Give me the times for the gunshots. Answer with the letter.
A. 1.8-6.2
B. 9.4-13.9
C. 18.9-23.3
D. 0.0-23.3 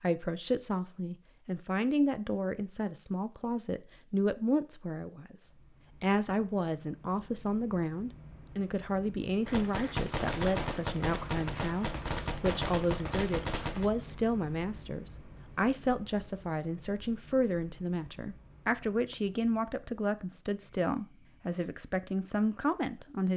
B.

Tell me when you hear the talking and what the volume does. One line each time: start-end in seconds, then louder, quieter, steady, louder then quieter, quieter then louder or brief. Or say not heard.
0.0-23.3 steady.